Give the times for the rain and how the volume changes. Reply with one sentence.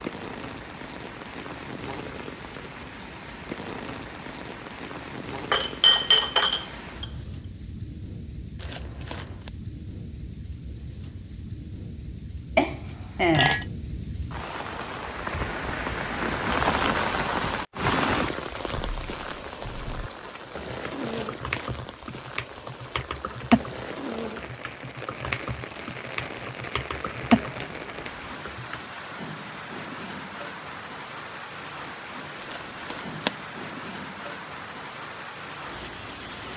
You can hear the rain from 0.0 to 36.5 s, getting louder then quieter.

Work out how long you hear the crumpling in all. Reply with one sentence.
The crumpling can be heard for 3 seconds in total.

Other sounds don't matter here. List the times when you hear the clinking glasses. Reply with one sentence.
The clinking glasses can be heard from 5.5 to 7.0 s, from 12.6 to 13.7 s and from 27.4 to 28.2 s.